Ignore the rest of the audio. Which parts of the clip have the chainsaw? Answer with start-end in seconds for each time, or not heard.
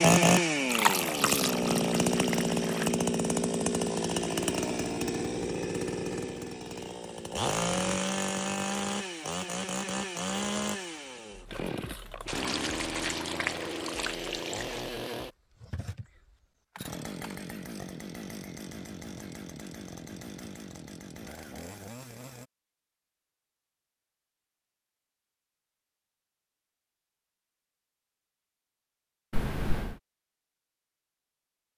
0.0-22.5.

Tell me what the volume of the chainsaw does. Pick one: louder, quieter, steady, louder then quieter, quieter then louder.
quieter.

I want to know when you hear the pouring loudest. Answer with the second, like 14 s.
1 s.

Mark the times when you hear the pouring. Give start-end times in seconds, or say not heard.
0.7-3.0, 12.2-14.8, 29.3-30.0.